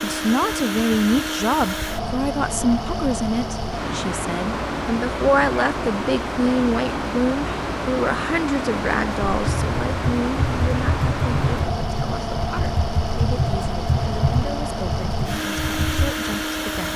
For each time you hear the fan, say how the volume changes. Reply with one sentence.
You can hear the fan from 0.0 to 16.9 s, at a steady volume.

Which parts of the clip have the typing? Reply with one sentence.
The typing can be heard from 9.2 to 16.1 s.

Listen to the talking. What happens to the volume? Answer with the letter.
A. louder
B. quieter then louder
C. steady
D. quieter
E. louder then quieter
D.